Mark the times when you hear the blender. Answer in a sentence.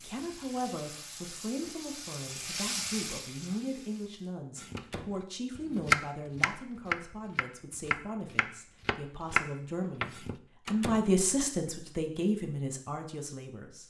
The blender can't be heard in this clip.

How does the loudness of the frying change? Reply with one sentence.
The loudness of the frying goes up, then down.